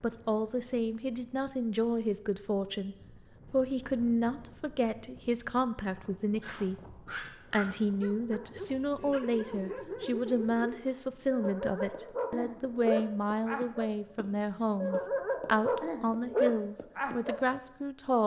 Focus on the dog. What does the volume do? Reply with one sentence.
The loudness of the dog goes up.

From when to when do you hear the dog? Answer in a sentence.
You can hear the dog from 6.4 to 17.4 s.